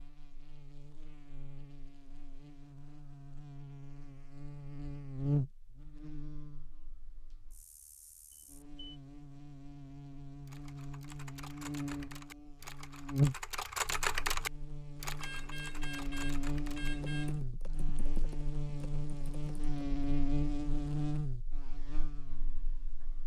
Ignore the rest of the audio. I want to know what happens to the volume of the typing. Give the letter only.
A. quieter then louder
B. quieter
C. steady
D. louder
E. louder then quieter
E.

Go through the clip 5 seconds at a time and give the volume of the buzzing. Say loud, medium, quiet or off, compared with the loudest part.
quiet, loud, loud, loud, loud.